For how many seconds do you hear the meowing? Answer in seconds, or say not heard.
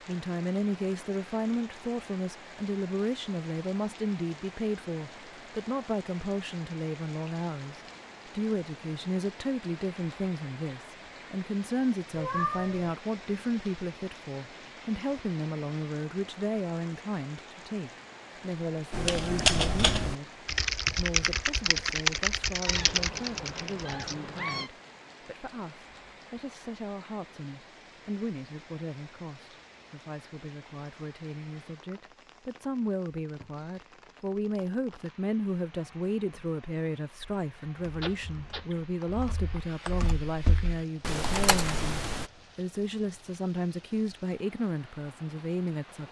4 s.